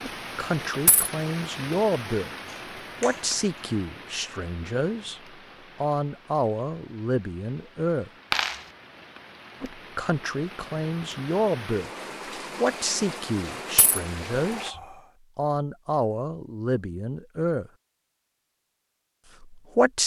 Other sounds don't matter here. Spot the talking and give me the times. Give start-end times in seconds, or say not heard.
0.0-2.3, 3.0-5.2, 5.8-8.1, 9.6-11.9, 12.6-17.7, 19.4-20.0.